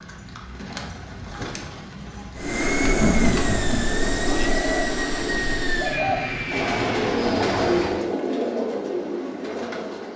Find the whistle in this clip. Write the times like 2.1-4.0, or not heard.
not heard.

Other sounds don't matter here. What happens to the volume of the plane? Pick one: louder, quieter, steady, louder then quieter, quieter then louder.
quieter.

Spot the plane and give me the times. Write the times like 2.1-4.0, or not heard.
2.4-8.1.